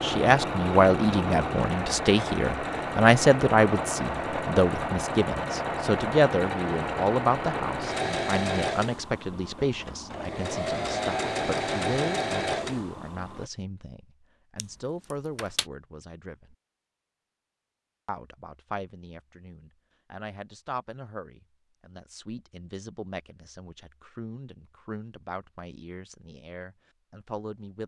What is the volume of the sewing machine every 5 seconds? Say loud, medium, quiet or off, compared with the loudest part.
loud, loud, loud, off, off, off.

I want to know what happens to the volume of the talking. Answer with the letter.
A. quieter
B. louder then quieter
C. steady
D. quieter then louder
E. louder
A.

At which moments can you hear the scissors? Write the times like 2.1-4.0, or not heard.
14.6-15.7.